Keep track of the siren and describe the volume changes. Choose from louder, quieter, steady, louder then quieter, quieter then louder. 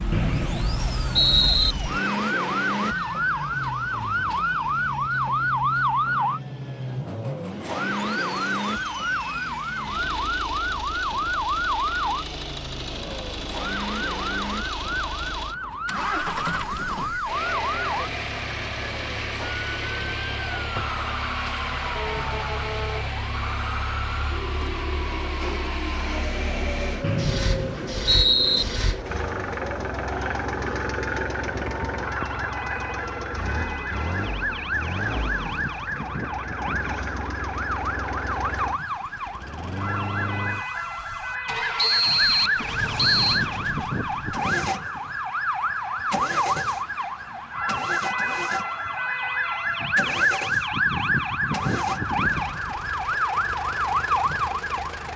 quieter then louder.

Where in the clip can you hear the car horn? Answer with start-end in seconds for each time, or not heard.
not heard.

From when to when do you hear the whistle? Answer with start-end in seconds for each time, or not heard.
0.1-1.8, 27.0-28.6, 41.8-43.5.